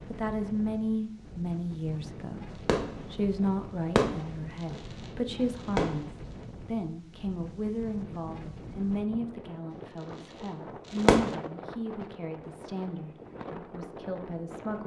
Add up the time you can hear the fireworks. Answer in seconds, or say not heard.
5 s.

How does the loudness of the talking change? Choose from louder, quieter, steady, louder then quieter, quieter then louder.
quieter.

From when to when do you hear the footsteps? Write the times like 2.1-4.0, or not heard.
not heard.